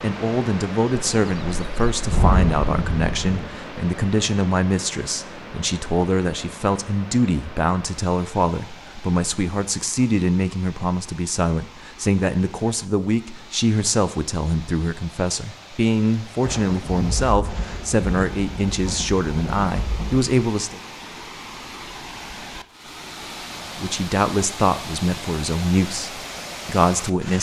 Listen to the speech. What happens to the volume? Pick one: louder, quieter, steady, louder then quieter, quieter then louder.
steady.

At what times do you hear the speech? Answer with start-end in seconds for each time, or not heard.
0.0-20.8, 23.8-27.3.